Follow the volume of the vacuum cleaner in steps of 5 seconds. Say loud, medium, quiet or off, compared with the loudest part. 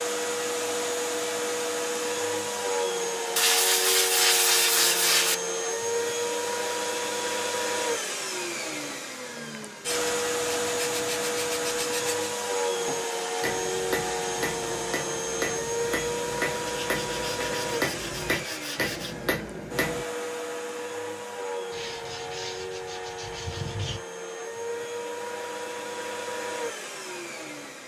loud, loud, loud, loud, medium, medium.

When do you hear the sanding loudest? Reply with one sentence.
The volume of the sanding peaks at 4 seconds.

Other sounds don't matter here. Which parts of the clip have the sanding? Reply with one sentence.
You can hear the sanding from 3.4 to 5.3 s, from 9.8 to 12.3 s, from 16.8 to 19.1 s and from 21.7 to 24.1 s.